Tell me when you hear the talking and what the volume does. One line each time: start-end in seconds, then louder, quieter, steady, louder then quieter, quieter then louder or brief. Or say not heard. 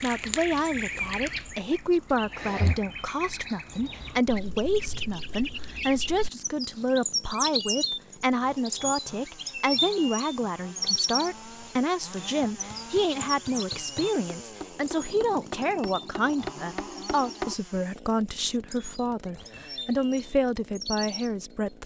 0.0-21.8 steady.